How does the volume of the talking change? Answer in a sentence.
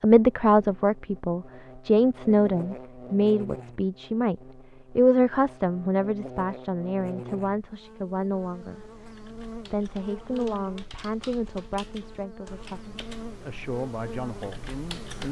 The volume of the talking goes down.